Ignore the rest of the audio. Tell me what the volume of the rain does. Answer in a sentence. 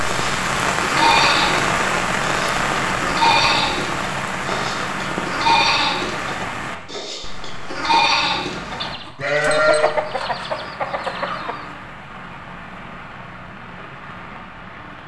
The loudness of the rain goes down.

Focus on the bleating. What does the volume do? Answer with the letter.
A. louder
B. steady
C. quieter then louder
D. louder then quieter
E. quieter
C.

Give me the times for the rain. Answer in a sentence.
The rain can be heard from 0.0 to 15.0 s.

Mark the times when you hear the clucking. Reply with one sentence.
The clucking can be heard from 8.8 to 11.7 s.